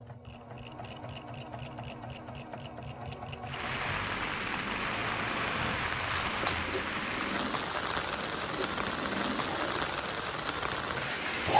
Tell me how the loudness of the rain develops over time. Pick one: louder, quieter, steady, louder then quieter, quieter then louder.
steady.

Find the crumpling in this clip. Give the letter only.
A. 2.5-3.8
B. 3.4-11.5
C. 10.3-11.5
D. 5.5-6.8
D.